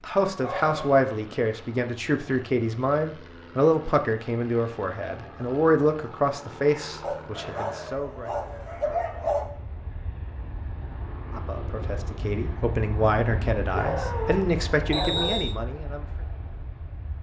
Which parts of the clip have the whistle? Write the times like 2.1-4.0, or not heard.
14.9-15.6.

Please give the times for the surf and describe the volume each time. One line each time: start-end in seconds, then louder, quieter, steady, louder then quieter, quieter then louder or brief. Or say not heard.
not heard.